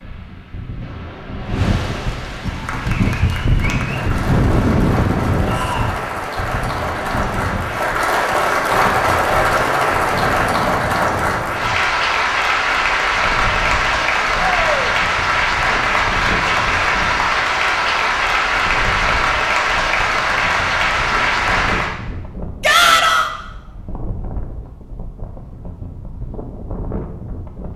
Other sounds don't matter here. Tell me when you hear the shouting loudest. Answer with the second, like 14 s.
23 s.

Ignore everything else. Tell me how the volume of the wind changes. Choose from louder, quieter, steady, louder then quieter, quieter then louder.
quieter.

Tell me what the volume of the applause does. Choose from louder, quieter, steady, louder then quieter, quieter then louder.
louder.